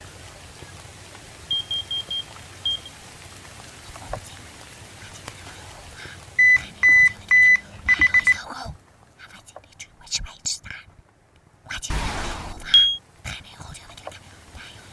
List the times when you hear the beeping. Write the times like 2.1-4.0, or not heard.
1.5-2.9, 6.3-8.4, 11.9-13.0.